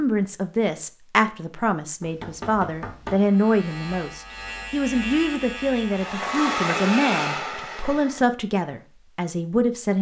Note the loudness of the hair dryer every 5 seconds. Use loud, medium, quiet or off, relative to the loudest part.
off, loud.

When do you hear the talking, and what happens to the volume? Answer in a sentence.
You can hear the talking from 0.0 to 9.9 s, at a steady volume.